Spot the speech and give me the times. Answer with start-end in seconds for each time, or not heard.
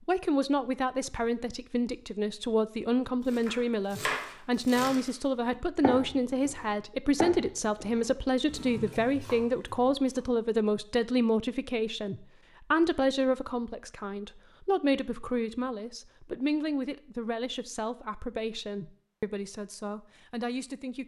0.1-21.0.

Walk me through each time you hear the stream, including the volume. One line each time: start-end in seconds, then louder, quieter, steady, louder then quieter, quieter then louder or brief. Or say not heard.
not heard.